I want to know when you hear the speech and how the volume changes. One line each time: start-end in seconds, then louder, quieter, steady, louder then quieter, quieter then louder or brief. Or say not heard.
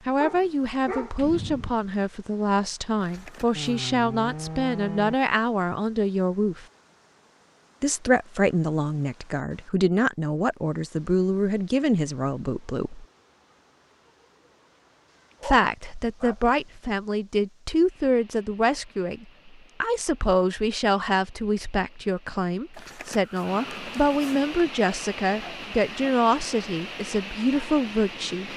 0.1-6.7 steady
7.8-13.1 steady
15.4-28.5 steady.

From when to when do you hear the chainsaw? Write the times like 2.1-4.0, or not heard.
3.5-5.2.